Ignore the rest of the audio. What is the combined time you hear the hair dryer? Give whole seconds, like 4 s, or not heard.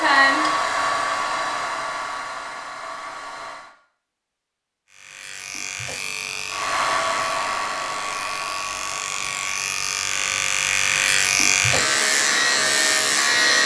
7 s.